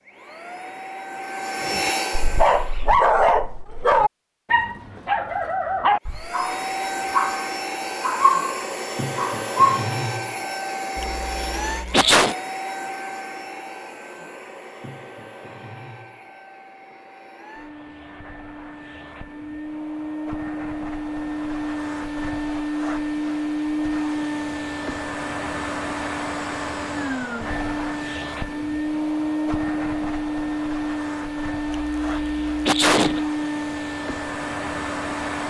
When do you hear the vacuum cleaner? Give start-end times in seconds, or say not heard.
0.0-3.0, 6.0-35.4.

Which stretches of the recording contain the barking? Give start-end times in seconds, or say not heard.
1.7-9.8.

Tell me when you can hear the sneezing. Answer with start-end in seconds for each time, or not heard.
10.9-12.3, 31.6-33.2.